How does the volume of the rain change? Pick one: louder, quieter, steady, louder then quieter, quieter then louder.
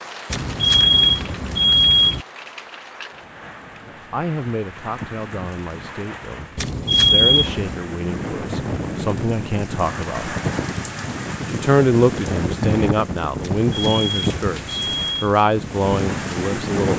louder.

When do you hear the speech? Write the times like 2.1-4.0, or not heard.
4.1-10.3, 11.4-16.9.